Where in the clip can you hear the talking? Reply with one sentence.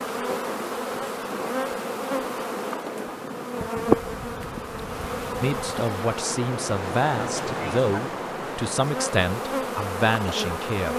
You can hear the talking from 5.4 to 10.9 s.